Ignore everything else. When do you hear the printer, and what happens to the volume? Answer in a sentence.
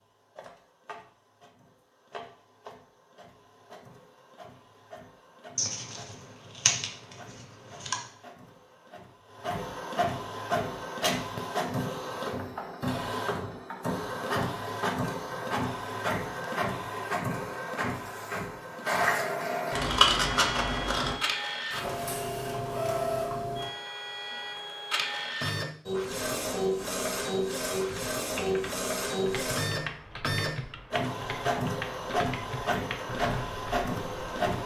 You can hear the printer from 0.0 to 34.6 s, getting louder.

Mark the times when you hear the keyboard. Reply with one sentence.
You can hear the keyboard from 27.9 to 34.5 s.